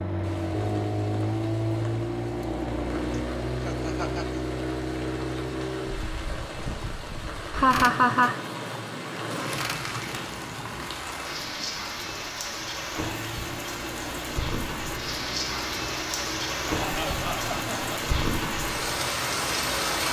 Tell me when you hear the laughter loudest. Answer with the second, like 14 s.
8 s.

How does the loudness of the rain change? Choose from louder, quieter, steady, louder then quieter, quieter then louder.
louder.